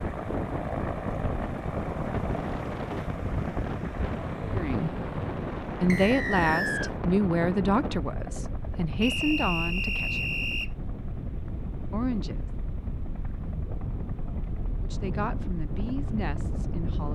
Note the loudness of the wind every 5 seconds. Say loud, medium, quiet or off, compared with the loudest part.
loud, loud, medium, loud.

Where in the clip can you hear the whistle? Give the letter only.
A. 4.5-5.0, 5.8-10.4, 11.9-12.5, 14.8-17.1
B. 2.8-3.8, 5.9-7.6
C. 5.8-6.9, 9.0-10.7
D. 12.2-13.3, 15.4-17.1
C.